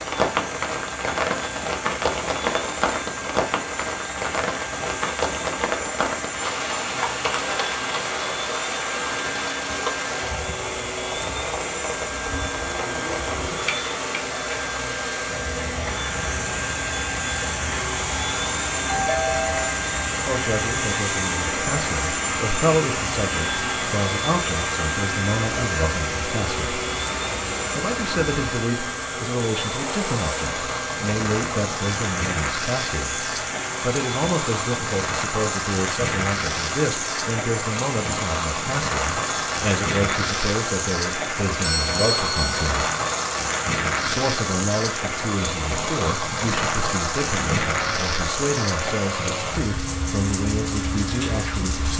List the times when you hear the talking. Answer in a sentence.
The talking can be heard from 20.2 to 26.8 s, from 27.8 to 42.9 s and from 44.0 to 51.9 s.